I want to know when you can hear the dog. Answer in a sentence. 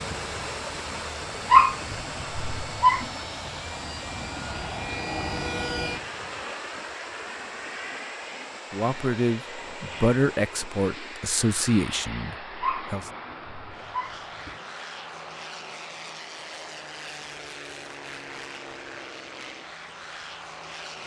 You can hear the dog from 1.5 to 3.0 s and from 12.6 to 14.6 s.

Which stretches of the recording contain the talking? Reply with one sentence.
You can hear the talking from 8.7 to 13.1 s.